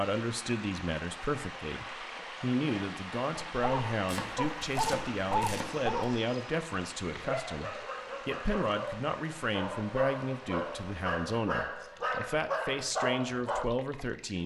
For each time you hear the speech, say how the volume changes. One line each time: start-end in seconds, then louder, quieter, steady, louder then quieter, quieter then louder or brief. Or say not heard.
0.0-14.4 steady.